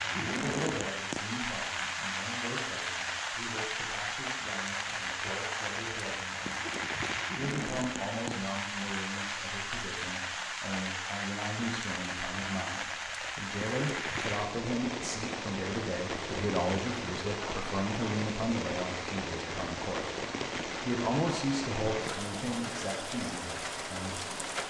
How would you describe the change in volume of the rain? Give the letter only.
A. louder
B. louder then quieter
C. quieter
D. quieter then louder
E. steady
E.